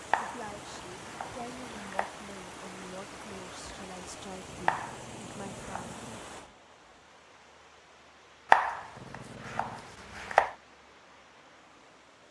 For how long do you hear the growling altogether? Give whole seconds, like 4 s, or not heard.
4 s.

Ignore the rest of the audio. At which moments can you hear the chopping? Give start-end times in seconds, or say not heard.
0.1-2.1, 4.7-6.0, 8.5-10.6.